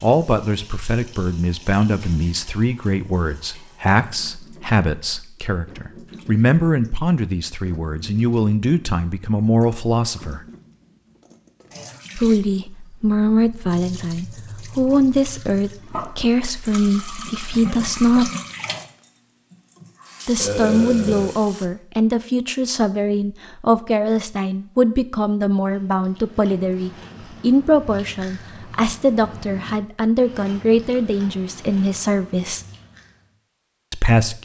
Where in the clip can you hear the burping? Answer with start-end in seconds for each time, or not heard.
20.4-21.3.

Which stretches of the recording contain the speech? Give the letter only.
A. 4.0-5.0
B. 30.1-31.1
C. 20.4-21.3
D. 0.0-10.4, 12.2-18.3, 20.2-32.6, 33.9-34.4
D.